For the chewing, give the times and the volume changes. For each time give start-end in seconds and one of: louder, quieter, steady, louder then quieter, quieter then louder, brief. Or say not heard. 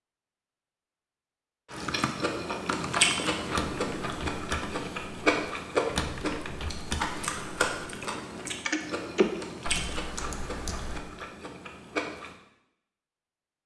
1.7-12.3 quieter.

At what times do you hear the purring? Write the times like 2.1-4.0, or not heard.
not heard.